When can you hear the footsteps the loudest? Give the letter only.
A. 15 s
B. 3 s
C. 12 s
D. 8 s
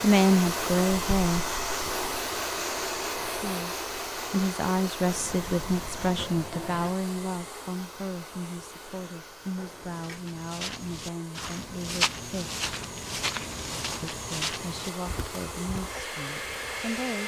C.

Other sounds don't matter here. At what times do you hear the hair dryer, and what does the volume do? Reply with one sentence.
You can hear the hair dryer from 0.0 to 17.2 s, getting quieter then louder.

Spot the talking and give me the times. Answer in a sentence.
The talking can be heard from 0.0 to 1.5 s, from 3.3 to 12.6 s and from 14.0 to 17.2 s.